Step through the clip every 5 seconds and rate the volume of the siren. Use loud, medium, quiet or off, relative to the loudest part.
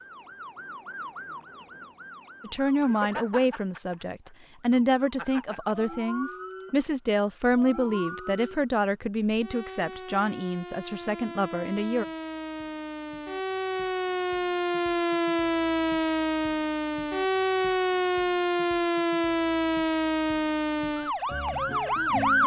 quiet, quiet, medium, loud, loud.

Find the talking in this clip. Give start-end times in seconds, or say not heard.
2.4-12.1.